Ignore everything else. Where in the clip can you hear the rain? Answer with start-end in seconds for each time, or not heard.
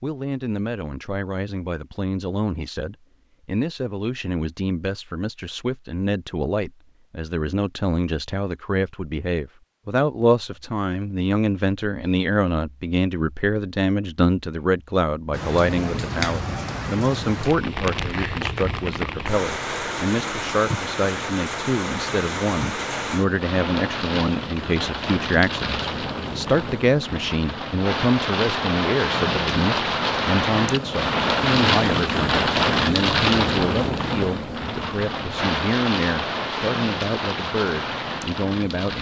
15.3-38.9.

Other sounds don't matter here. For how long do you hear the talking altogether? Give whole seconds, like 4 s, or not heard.
39 s.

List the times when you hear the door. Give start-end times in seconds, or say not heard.
not heard.